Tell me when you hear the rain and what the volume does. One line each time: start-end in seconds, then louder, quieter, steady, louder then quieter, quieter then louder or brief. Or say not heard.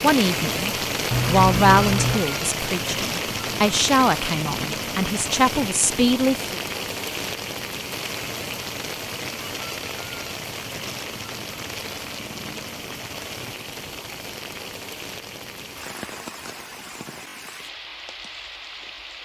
0.0-19.2 quieter.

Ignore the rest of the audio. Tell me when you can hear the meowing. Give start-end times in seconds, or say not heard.
1.1-2.2.